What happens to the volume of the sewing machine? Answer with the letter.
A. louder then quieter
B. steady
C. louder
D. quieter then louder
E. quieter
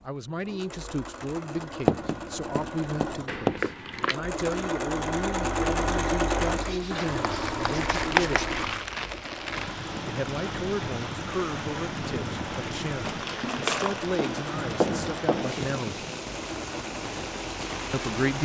A.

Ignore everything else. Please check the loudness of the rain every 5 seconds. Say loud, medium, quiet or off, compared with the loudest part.
off, loud, loud, loud.